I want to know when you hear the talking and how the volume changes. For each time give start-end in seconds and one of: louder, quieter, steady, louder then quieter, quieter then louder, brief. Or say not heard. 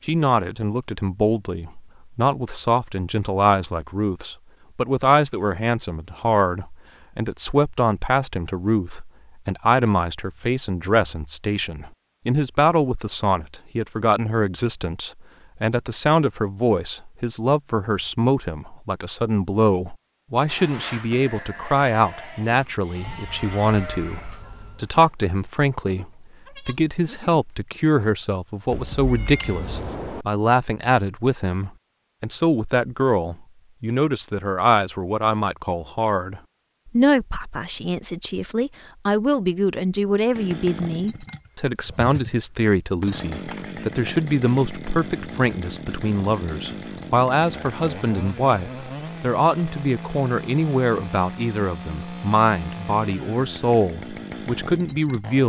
0.1-55.4 steady.